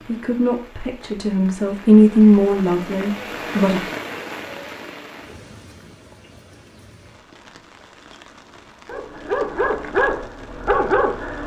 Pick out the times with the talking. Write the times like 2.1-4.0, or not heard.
0.1-3.9.